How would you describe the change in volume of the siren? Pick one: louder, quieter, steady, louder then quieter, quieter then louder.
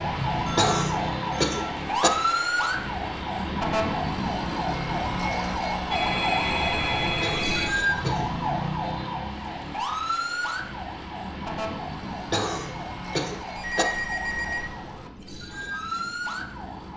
quieter.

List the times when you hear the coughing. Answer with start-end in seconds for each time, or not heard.
0.6-2.1, 7.1-8.3, 12.3-13.8.